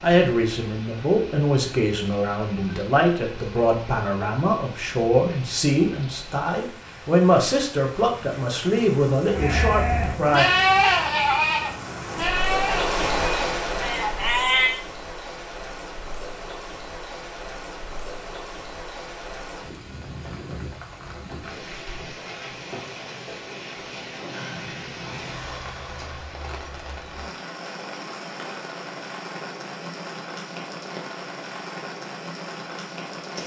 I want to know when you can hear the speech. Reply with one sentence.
The speech can be heard from 0.0 to 10.4 s.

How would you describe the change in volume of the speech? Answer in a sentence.
The loudness of the speech stays about the same.